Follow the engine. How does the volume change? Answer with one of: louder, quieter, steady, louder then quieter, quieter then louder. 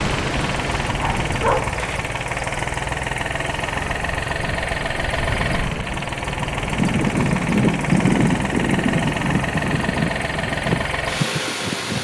steady.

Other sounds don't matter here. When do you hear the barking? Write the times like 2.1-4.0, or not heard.
0.9-2.0.